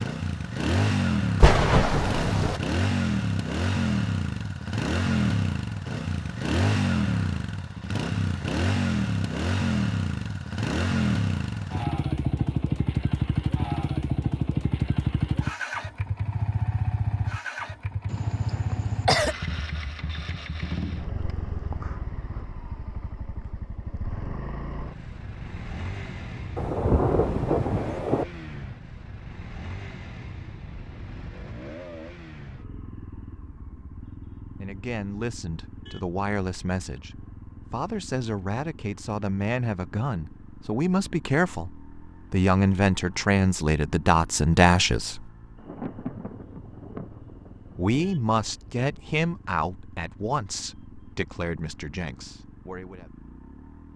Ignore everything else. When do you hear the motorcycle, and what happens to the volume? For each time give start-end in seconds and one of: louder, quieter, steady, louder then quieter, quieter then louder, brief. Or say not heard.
0.0-53.9 quieter.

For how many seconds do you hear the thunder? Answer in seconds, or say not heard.
6 s.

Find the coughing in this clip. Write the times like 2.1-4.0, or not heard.
18.1-19.4.